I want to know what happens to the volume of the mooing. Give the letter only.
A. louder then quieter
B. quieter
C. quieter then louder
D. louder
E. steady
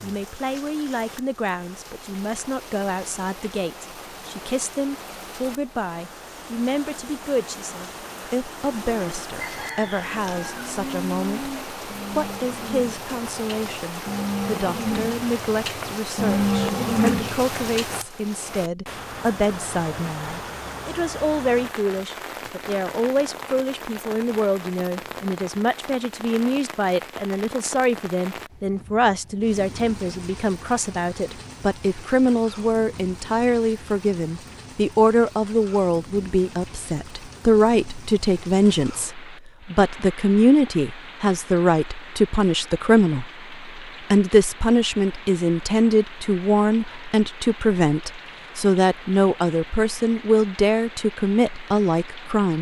D.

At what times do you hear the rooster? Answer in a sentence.
The rooster can be heard from 9.3 to 10.6 s.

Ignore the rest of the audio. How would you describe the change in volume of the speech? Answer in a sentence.
The volume of the speech goes up.